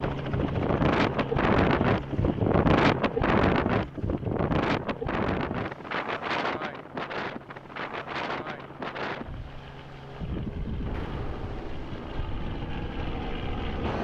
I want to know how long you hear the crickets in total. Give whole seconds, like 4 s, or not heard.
not heard.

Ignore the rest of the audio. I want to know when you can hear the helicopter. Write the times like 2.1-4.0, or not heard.
0.0-13.9.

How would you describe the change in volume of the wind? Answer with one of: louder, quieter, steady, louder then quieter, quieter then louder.
quieter.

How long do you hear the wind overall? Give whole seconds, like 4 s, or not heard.
14 s.